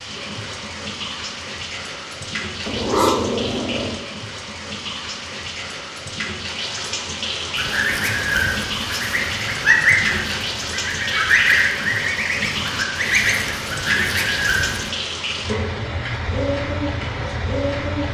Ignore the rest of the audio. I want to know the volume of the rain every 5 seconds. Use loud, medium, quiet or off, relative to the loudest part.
medium, loud, loud, loud.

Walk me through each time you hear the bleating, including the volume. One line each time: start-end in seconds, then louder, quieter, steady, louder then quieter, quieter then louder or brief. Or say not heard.
not heard.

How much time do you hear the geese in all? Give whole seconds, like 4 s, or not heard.
7 s.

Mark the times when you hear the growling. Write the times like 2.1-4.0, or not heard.
2.6-4.0.